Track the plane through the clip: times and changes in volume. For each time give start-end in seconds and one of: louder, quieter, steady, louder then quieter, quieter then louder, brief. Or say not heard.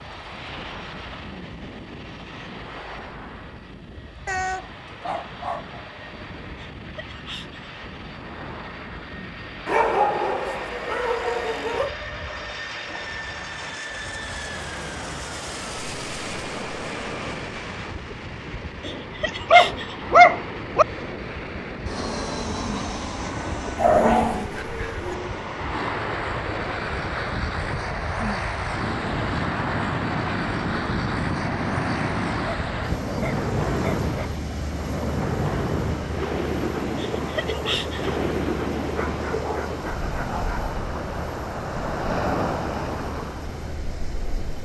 0.0-44.6 louder then quieter.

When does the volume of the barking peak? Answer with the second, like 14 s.
20 s.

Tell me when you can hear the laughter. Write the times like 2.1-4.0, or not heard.
6.8-7.7, 18.8-20.1, 37.0-38.2.